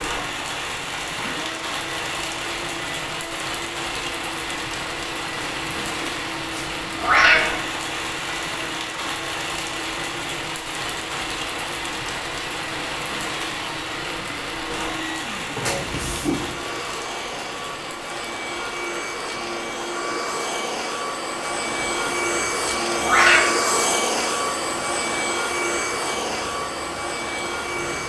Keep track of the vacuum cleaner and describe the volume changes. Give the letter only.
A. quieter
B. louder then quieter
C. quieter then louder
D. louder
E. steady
D.